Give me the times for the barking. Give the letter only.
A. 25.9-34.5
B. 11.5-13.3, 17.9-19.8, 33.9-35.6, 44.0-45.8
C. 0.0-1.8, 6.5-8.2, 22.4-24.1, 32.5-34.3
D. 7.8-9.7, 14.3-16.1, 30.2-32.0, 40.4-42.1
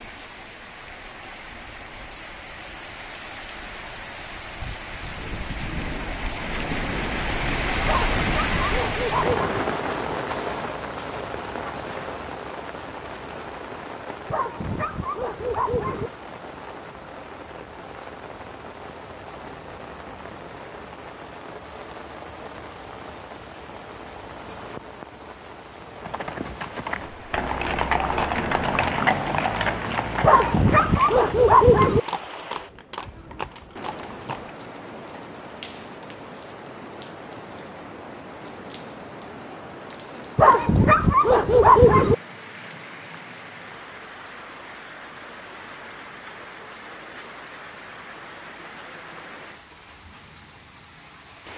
D.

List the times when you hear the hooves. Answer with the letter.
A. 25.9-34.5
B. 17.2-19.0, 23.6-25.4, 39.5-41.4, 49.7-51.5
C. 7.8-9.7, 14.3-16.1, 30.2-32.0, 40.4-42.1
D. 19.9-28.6
A.